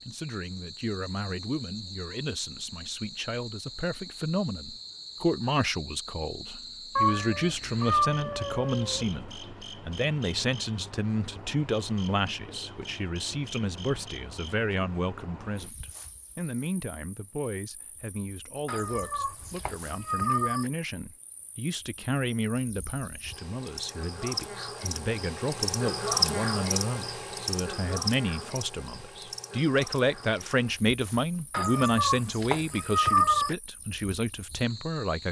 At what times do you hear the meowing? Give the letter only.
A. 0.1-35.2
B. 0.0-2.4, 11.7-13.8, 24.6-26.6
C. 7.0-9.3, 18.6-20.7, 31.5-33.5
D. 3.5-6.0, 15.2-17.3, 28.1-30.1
C.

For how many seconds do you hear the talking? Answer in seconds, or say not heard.
35 s.